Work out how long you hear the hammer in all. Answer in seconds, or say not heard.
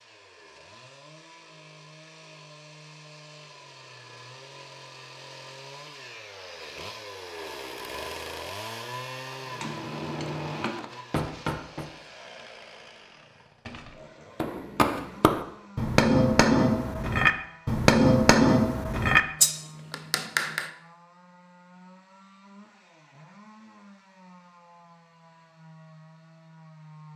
9 s.